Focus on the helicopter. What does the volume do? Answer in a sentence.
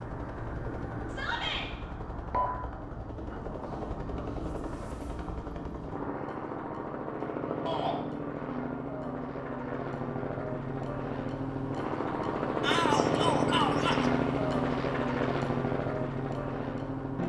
The volume of the helicopter goes up.